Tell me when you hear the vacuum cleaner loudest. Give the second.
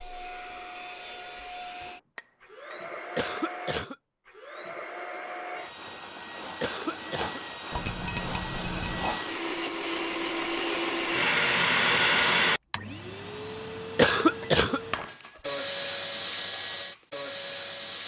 12 s.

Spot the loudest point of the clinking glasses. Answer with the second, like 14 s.
8 s.